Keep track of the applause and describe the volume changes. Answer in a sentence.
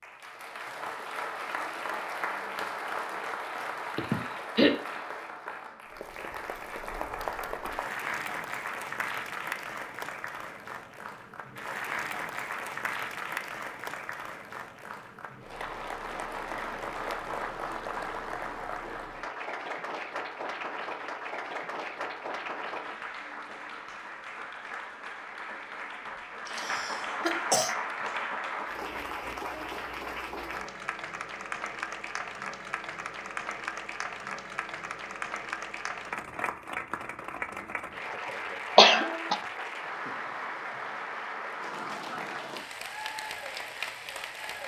The volume of the applause stays about the same.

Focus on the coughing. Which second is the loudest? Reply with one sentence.
The loudest moment of the coughing is at 39 seconds.